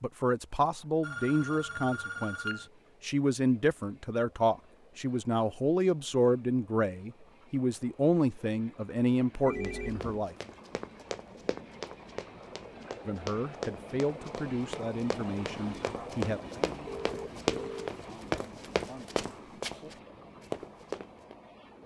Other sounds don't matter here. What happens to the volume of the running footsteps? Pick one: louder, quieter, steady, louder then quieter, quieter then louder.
louder.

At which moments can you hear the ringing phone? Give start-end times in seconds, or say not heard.
1.0-2.7, 9.4-10.2, 16.9-17.9.